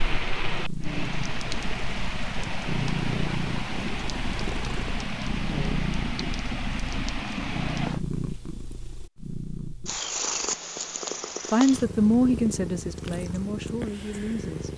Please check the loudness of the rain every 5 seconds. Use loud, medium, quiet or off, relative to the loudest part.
loud, loud, off.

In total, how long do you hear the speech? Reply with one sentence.
You can hear the speech for 3 seconds altogether.